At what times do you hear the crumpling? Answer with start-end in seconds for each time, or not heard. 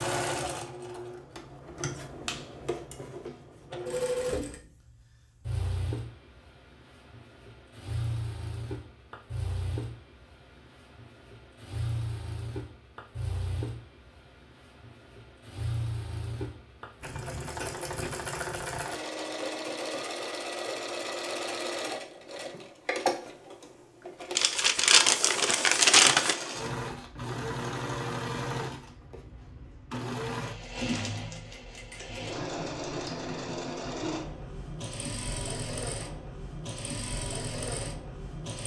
24.4-26.4.